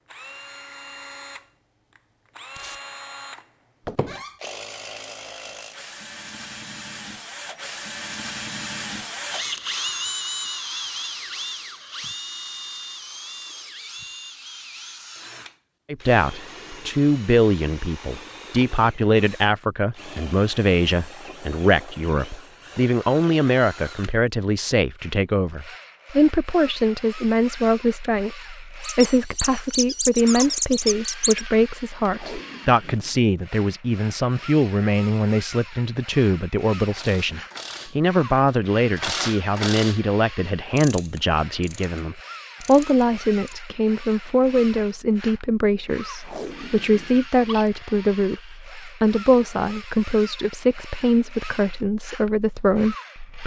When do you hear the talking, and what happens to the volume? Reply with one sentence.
The talking can be heard from 15.9 to 53.4 s, at a steady volume.